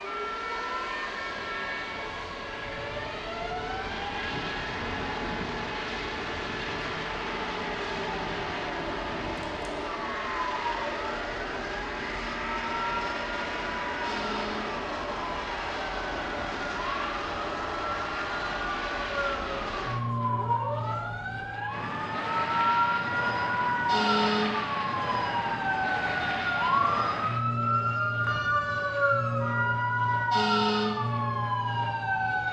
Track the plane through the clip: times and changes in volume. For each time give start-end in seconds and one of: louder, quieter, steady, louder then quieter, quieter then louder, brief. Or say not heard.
0.0-32.4 steady.